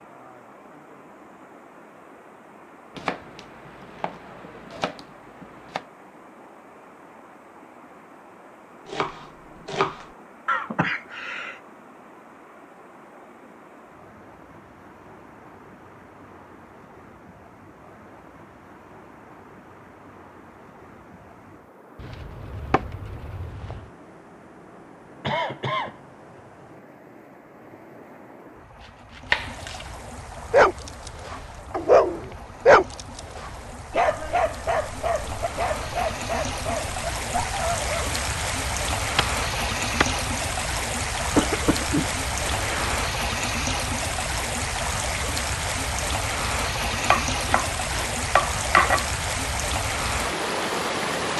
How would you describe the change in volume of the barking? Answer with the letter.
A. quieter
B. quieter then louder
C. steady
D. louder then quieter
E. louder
A.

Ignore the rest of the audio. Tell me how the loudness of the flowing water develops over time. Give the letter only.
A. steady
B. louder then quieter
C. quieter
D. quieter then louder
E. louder
E.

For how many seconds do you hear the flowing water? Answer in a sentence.
The flowing water can be heard for 51 seconds in total.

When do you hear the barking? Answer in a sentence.
The barking can be heard from 30.5 to 38.1 s.